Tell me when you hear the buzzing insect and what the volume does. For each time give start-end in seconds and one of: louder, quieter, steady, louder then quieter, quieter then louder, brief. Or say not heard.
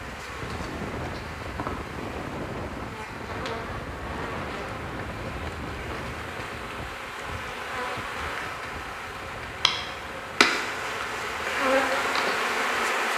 0.0-13.1 louder.